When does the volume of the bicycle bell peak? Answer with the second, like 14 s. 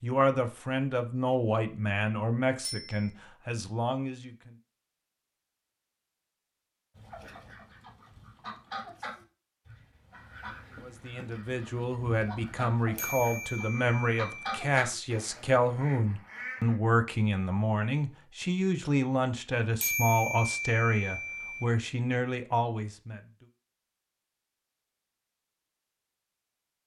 20 s.